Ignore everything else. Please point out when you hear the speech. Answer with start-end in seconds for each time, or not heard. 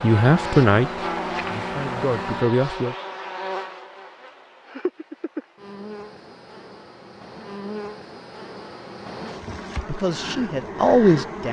0.0-3.0, 9.8-11.4.